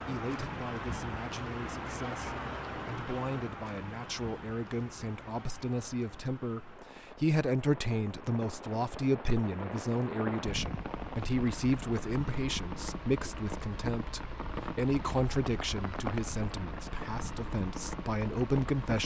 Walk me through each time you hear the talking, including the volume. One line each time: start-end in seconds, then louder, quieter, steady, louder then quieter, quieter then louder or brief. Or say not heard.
0.0-19.0 louder.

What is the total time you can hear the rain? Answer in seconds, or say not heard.
19 s.